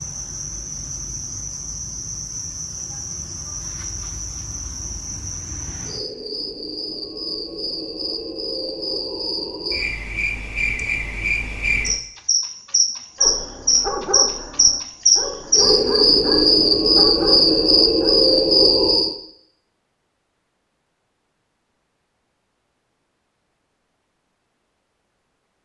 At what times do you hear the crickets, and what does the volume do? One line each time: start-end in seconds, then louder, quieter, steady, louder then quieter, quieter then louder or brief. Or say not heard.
0.0-19.1 louder.